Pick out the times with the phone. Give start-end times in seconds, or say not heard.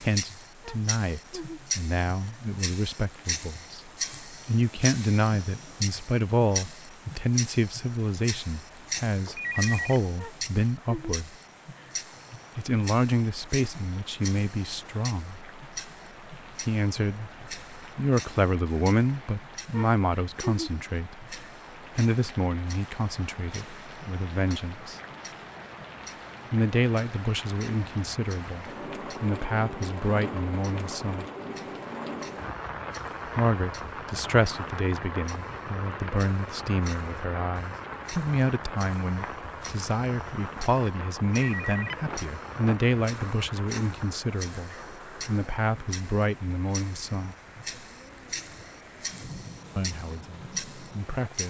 9.2-10.0, 41.5-42.8.